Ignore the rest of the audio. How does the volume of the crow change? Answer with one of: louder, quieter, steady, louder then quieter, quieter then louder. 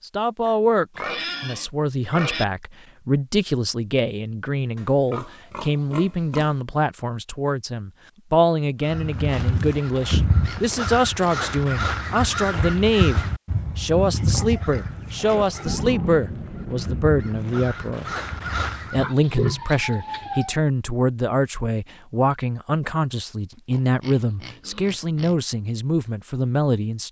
quieter then louder.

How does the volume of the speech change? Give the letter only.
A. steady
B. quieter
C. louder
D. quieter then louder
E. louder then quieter
A.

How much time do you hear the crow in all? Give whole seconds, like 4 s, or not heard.
10 s.